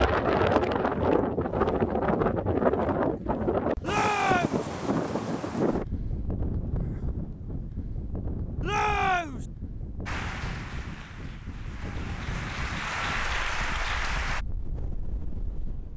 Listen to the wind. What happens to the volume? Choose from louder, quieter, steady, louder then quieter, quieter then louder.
quieter.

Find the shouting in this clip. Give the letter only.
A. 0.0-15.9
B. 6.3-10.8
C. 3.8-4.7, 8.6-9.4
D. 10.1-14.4
C.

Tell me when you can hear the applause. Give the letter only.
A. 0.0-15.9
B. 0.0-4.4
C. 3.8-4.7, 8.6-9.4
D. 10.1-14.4
D.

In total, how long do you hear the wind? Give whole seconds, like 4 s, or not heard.
16 s.